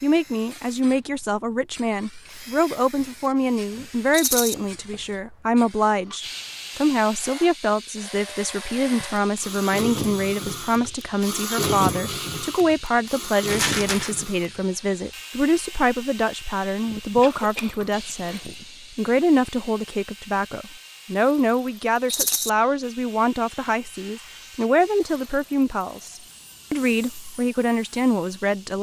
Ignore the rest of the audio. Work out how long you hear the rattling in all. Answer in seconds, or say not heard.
2 s.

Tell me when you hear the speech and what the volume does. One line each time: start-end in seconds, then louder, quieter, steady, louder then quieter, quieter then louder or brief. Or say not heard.
0.0-28.7 steady.